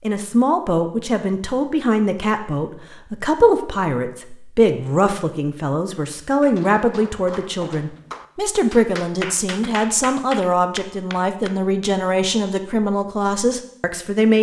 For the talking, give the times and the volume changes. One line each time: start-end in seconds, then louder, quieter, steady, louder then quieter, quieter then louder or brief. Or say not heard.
0.0-14.3 steady.